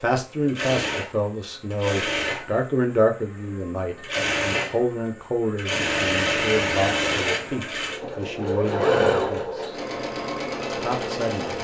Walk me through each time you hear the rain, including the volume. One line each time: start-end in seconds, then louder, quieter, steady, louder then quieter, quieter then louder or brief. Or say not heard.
not heard.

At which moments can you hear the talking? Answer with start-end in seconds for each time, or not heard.
0.0-9.8, 10.7-11.5.